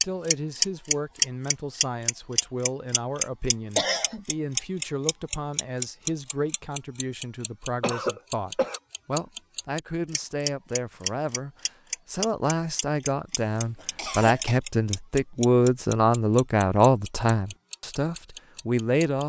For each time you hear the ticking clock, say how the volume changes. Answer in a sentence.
The ticking clock can be heard from 0.0 to 19.2 s, getting quieter.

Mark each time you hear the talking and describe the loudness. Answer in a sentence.
The talking can be heard from 0.0 to 19.2 s, getting louder.